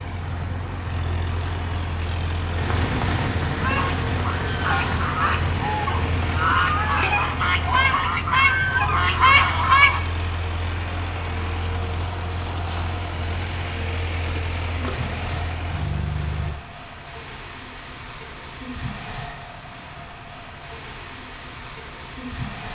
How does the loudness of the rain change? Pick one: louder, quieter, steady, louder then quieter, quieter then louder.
quieter.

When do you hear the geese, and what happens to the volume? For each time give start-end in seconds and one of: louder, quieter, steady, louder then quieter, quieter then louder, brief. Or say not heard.
3.6-10.0 louder.